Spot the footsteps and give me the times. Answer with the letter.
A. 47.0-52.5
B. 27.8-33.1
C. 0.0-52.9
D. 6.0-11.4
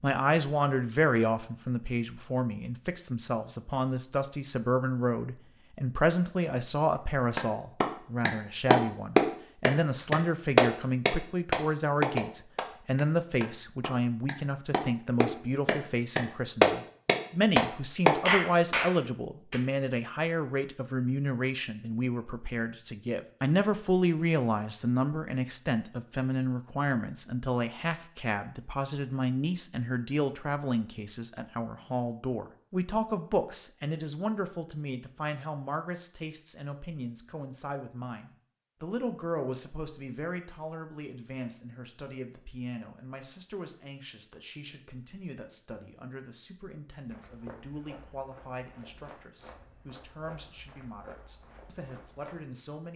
A.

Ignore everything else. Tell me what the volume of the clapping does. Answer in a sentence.
The volume of the clapping goes down, then up.